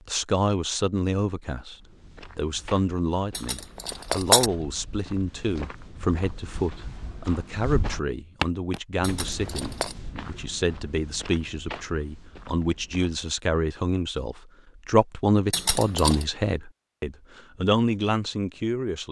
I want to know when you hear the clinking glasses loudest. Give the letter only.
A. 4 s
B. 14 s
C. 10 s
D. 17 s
A.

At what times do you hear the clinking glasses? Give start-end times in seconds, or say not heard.
3.3-4.5, 9.0-9.9, 15.5-16.2.